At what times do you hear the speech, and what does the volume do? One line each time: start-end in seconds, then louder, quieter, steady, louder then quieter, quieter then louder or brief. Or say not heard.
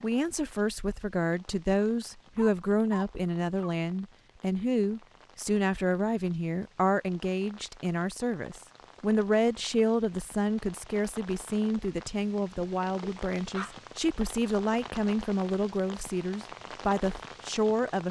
0.0-18.0 steady.